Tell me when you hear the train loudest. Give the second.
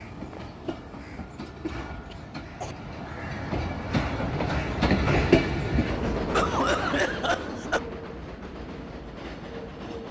5 s.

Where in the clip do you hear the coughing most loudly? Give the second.
7 s.